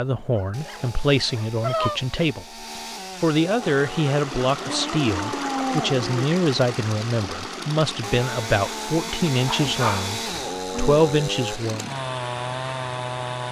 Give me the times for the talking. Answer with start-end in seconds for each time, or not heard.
0.0-11.9.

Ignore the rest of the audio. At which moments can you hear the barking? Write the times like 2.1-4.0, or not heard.
0.3-2.2, 4.5-6.2, 9.4-11.0.